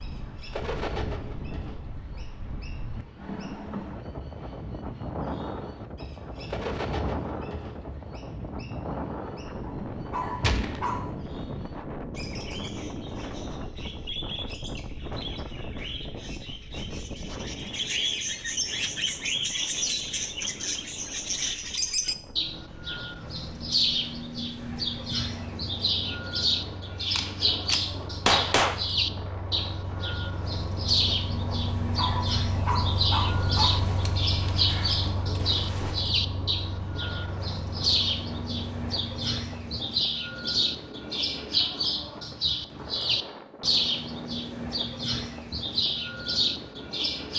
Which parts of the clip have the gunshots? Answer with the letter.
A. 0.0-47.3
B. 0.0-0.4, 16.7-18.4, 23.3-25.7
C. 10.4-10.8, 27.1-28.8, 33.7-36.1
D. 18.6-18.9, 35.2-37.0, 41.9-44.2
C.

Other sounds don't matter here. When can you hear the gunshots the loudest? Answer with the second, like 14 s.
28 s.